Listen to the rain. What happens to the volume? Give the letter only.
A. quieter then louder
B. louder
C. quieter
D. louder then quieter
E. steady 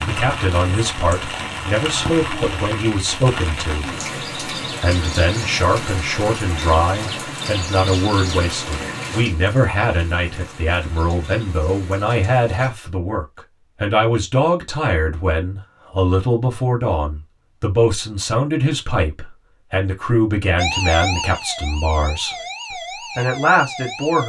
C.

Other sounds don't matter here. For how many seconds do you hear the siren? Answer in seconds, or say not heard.
4 s.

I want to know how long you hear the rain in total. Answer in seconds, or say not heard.
13 s.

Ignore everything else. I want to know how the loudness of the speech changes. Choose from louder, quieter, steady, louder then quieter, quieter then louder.
steady.